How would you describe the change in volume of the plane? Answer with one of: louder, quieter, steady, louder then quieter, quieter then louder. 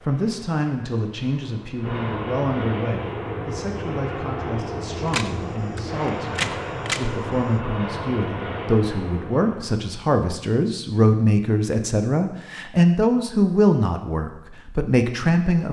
louder.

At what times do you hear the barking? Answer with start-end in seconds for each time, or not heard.
not heard.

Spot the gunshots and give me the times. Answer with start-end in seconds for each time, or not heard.
5.0-7.1.